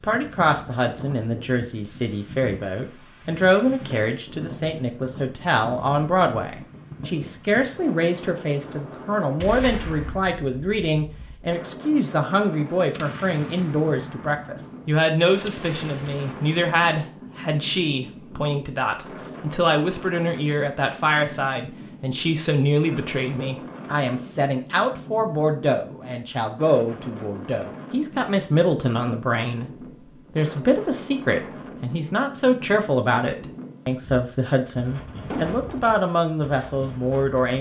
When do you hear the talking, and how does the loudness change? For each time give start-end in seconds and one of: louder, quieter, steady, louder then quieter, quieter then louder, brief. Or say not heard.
0.0-37.5 steady.